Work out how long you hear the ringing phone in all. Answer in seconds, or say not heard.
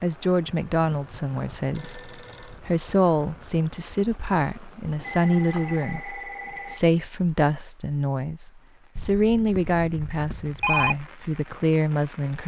6 s.